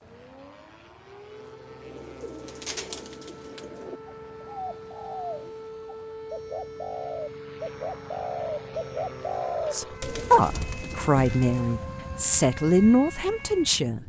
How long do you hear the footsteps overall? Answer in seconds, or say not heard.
not heard.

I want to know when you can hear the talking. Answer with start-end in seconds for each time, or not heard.
9.7-14.0.